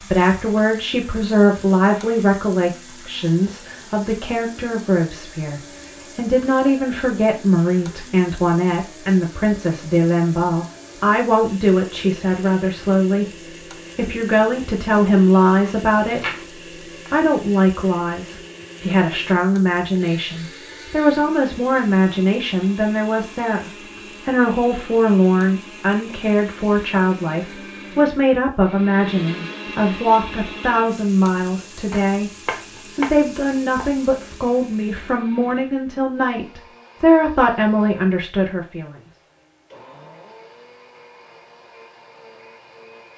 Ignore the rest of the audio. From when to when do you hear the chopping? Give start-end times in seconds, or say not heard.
15.7-17.1, 31.9-33.9.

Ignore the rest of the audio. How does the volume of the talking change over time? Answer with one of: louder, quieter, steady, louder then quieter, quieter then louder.
steady.